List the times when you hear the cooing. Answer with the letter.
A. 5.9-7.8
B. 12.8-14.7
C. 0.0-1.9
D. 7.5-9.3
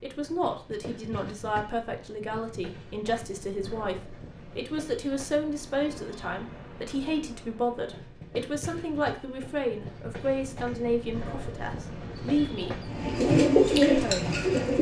B.